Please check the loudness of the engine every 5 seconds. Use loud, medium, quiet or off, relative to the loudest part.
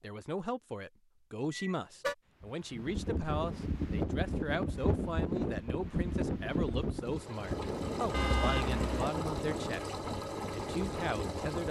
off, loud, loud.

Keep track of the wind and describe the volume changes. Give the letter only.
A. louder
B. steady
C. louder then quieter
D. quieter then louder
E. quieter
E.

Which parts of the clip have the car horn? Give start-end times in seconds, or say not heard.
1.5-2.1, 8.1-9.1.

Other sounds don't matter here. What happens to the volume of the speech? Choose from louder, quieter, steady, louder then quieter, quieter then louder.
steady.